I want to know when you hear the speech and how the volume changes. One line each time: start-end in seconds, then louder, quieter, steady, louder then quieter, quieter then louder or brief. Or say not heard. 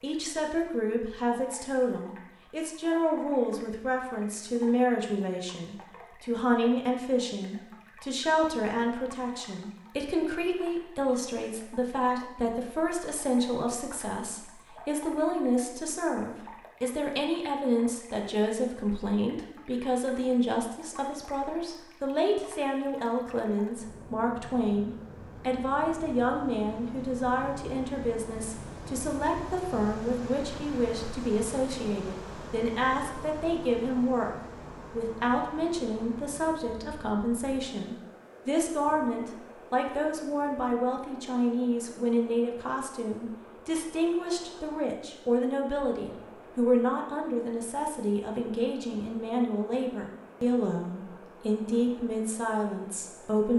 0.0-53.5 steady.